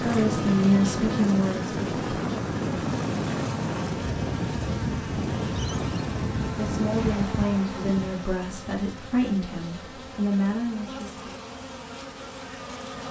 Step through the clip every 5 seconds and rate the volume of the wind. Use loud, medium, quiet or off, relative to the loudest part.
loud, loud, off.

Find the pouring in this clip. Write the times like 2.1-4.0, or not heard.
not heard.